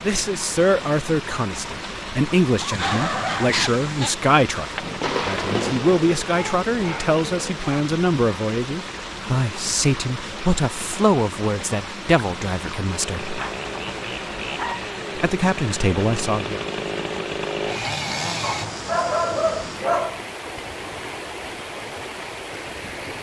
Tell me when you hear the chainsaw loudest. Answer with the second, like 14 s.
18 s.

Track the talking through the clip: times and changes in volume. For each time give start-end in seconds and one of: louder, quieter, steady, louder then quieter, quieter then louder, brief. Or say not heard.
0.0-13.3 steady
15.2-16.6 brief.